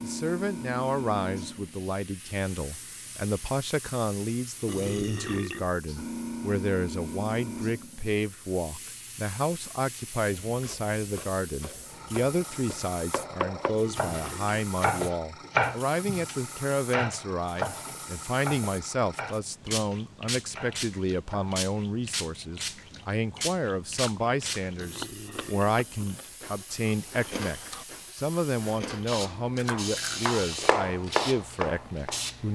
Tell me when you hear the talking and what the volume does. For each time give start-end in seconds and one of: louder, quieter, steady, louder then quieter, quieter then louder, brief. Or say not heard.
0.0-32.5 steady.